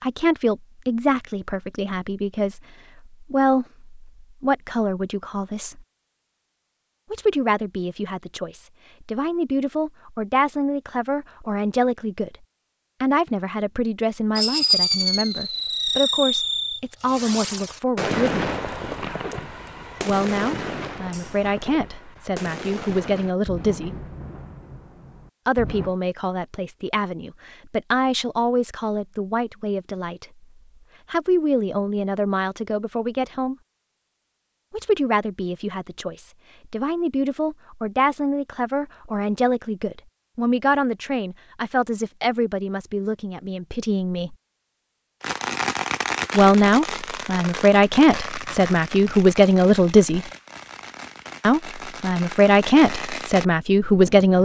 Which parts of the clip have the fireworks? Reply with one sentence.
You can hear the fireworks from 14.3 to 25.9 s and from 45.2 to 54.4 s.